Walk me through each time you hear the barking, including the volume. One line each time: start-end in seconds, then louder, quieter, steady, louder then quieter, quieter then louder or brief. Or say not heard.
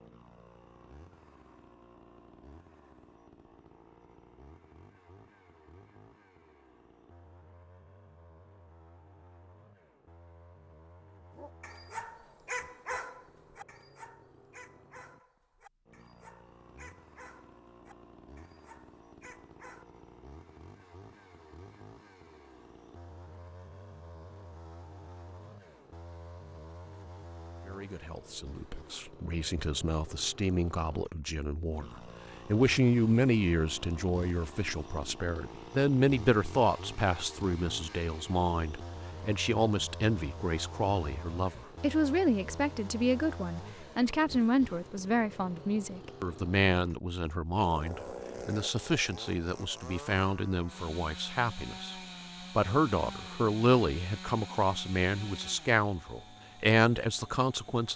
11.3-19.9 quieter.